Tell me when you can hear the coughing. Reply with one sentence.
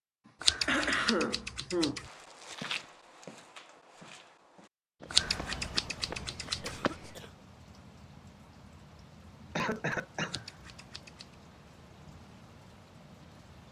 You can hear the coughing from 0.2 to 2.0 s, from 6.6 to 7.3 s and from 9.6 to 10.4 s.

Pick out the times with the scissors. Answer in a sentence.
You can hear the scissors from 0.4 to 2.0 s, from 5.1 to 6.8 s and from 10.2 to 11.3 s.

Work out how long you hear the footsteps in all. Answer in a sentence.
The footsteps can be heard for 5 seconds in total.